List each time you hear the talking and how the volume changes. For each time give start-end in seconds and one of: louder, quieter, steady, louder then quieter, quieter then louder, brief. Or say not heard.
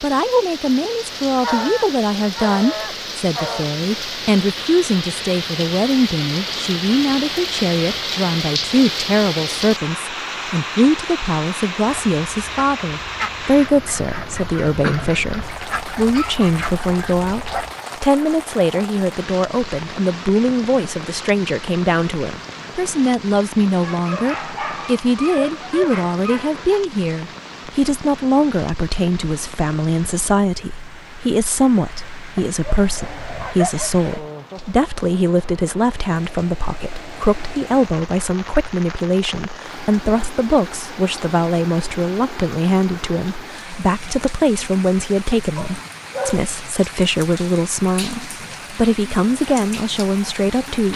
0.0-50.9 steady.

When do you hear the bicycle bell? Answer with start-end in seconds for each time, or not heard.
not heard.